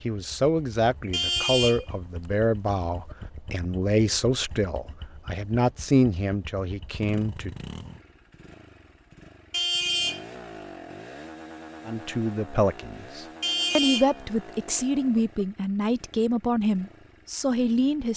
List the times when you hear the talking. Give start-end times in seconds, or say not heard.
0.0-7.5, 11.8-18.1.